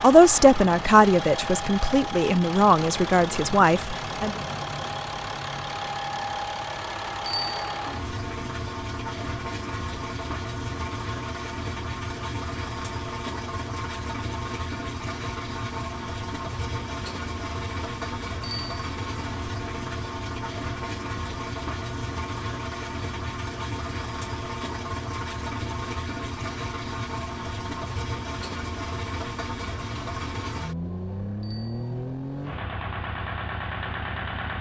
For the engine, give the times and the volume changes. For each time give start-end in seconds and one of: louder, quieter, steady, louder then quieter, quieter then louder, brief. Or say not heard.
0.0-34.5 steady.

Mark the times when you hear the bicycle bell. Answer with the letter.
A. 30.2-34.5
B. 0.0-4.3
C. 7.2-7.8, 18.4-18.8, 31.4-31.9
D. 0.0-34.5
C.